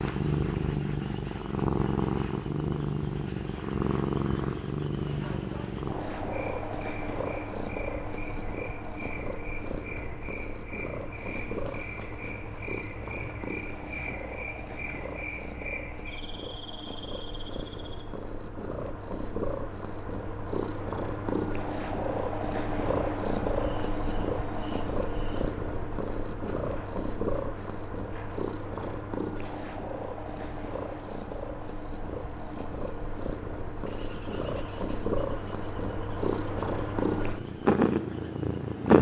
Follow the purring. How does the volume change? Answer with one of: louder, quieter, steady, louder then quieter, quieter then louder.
quieter then louder.